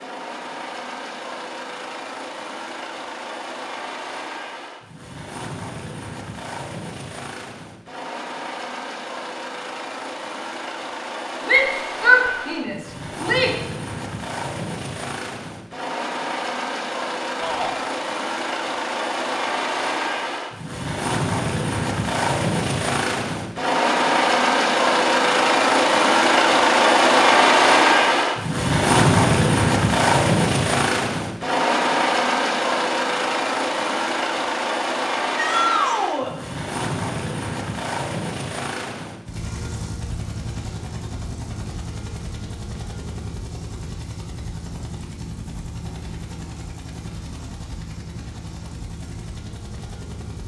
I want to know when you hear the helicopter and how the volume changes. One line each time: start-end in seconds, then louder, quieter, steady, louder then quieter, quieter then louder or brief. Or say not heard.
0.0-50.4 louder then quieter.